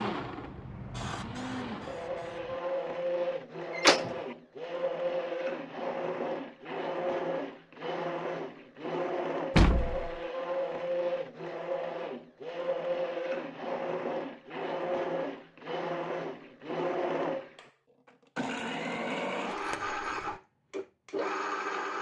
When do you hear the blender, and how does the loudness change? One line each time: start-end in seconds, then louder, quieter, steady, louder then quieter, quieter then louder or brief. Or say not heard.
0.0-21.9 steady.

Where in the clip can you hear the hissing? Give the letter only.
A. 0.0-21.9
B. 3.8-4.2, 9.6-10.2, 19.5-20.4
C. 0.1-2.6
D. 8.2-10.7
C.